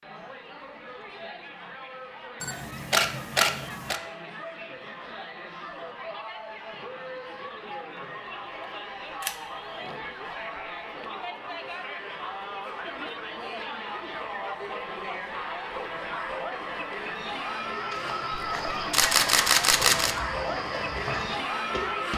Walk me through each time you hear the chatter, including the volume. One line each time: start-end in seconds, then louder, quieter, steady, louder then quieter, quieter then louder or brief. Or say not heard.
0.0-22.1 louder.